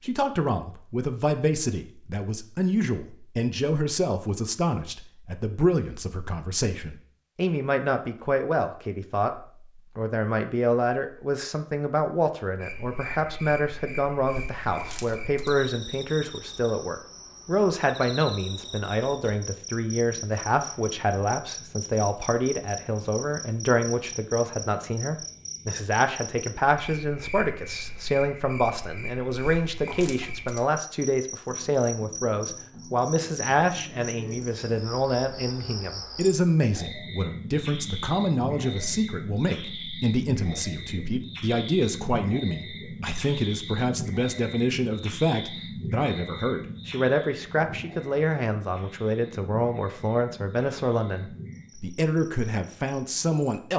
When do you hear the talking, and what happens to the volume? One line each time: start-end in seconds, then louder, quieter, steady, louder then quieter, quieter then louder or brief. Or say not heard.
0.0-53.7 steady.